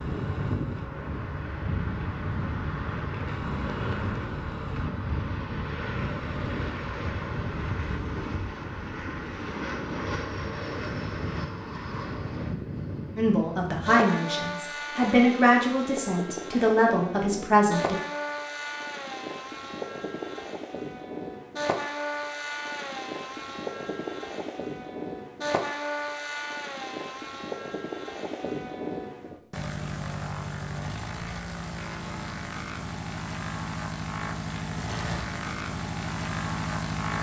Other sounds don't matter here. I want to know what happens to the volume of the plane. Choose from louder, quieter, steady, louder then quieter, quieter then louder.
steady.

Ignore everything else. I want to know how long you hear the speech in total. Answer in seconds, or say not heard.
5 s.